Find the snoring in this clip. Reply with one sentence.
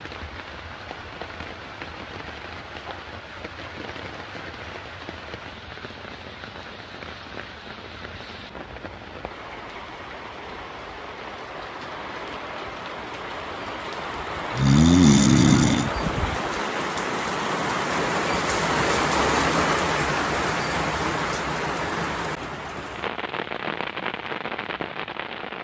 You can hear the snoring from 14.5 to 15.9 s.